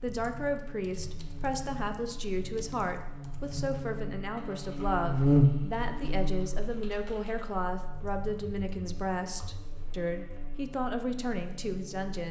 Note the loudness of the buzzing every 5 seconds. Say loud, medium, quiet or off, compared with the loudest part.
quiet, loud, quiet.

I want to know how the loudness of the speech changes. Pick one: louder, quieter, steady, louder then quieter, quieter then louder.
steady.